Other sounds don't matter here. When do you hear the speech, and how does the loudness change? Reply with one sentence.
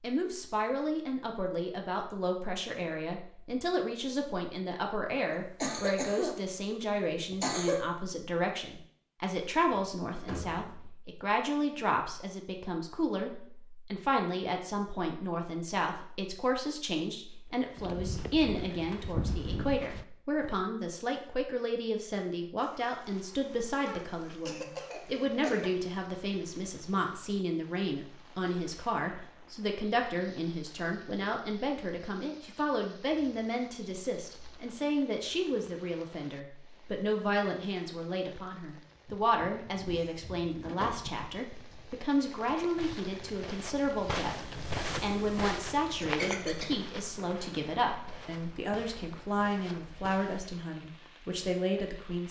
The speech can be heard from 0.0 to 52.2 s, at a steady volume.